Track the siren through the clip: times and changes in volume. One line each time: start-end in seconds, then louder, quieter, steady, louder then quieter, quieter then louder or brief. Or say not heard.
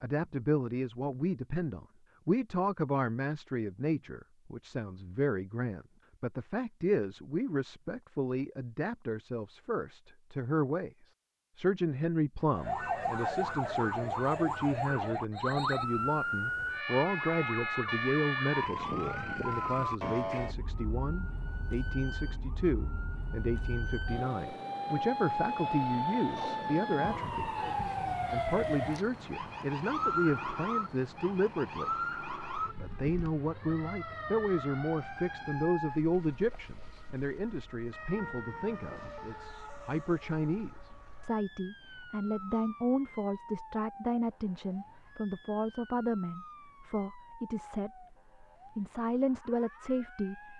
12.5-50.5 quieter.